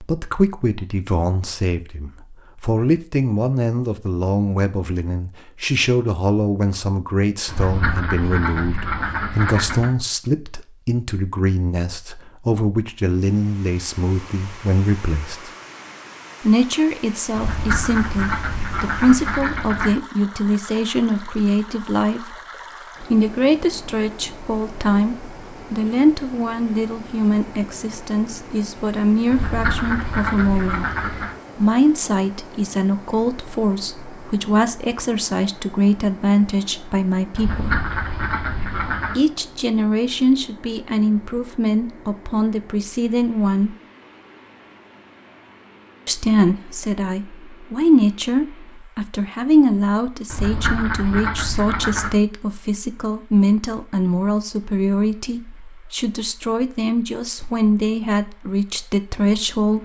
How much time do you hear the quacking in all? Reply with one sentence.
You can hear the quacking for 11 seconds altogether.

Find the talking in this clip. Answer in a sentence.
You can hear the talking from 0.0 to 15.5 s, from 16.4 to 22.4 s, from 23.0 to 30.9 s, from 31.6 to 37.8 s, from 39.1 to 43.8 s and from 46.0 to 59.7 s.